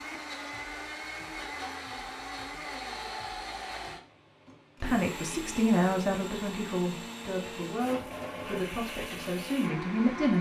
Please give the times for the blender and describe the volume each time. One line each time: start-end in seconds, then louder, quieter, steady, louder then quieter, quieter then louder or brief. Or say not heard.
0.0-10.3 steady.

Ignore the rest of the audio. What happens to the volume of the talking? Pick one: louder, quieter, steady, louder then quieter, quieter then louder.
quieter.